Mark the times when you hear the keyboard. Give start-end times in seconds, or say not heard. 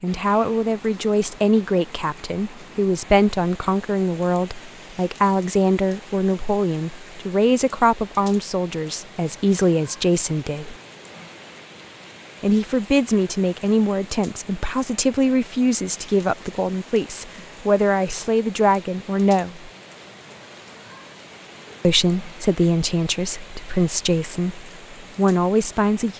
not heard.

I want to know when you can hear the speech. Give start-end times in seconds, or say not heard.
0.0-10.8, 12.4-19.7, 21.8-26.1.